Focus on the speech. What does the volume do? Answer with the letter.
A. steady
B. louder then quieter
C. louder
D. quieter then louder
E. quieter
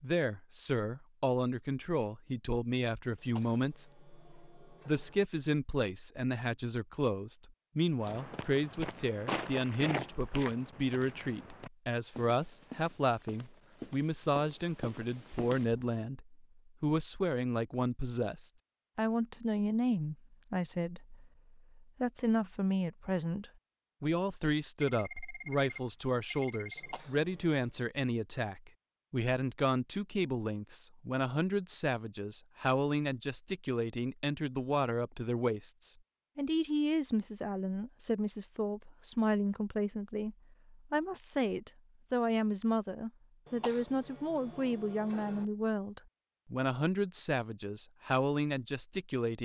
A.